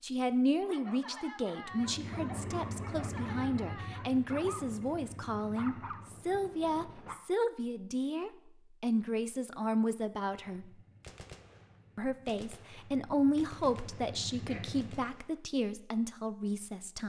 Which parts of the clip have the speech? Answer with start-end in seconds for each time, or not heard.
0.0-10.7, 11.9-17.0.